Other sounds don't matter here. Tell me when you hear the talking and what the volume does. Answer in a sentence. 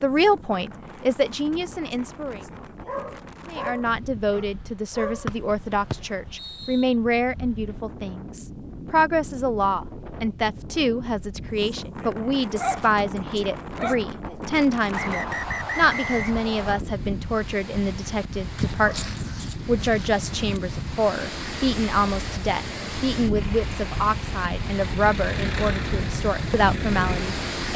The talking can be heard briefly from 0.0 to 2.4 s; and from 3.5 to 27.7 s, at a steady volume.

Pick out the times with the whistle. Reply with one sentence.
You can hear the whistle from 5.2 to 6.9 s and from 14.9 to 16.9 s.